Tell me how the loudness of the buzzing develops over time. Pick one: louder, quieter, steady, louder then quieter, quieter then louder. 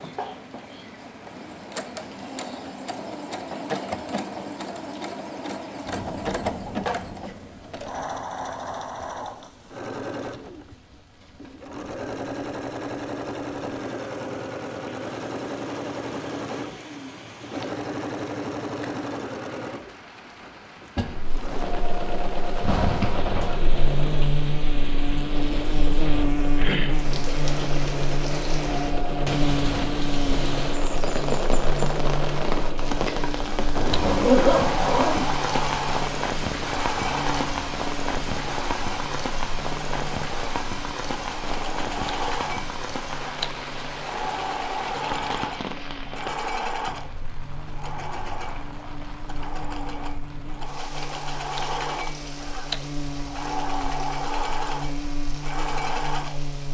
quieter then louder.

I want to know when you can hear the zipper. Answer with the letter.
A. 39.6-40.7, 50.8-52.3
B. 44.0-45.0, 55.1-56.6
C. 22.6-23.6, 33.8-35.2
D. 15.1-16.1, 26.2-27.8
C.